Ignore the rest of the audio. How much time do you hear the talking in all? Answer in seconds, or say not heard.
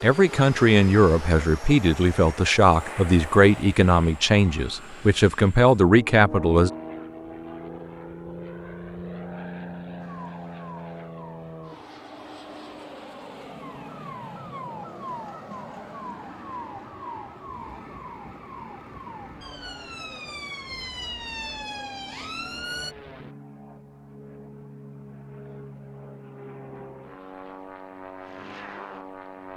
7 s.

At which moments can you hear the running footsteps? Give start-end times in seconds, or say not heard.
not heard.